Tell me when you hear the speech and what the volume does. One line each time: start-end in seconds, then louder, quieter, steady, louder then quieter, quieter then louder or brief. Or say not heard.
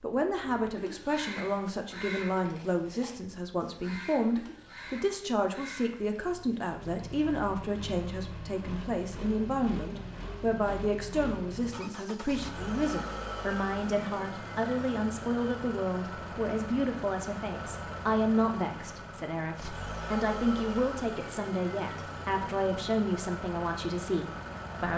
0.0-24.9 steady.